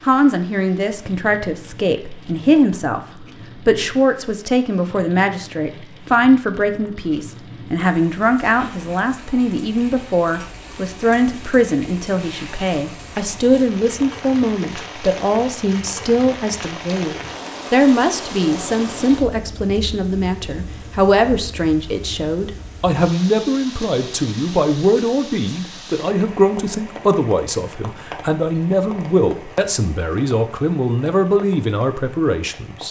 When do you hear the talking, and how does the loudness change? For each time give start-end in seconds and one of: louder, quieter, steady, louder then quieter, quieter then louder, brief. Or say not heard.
0.0-32.8 steady.